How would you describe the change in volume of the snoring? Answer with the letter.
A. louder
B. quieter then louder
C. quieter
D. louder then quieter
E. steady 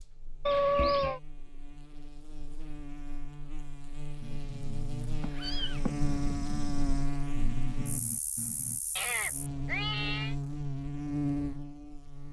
E.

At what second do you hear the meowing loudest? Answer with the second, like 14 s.
1 s.